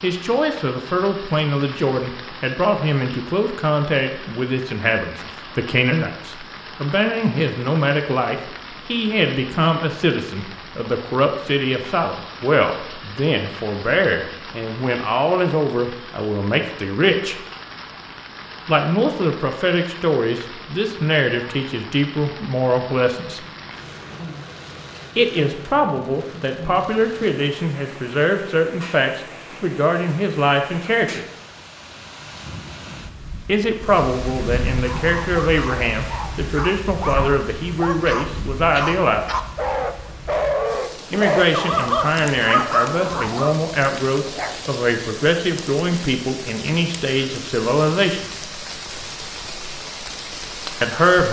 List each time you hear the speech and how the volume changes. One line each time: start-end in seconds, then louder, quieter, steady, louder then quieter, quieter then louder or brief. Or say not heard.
0.0-17.4 steady
18.6-23.4 steady
25.1-31.2 steady
33.5-39.4 steady
41.1-48.2 steady
50.8-51.2 brief.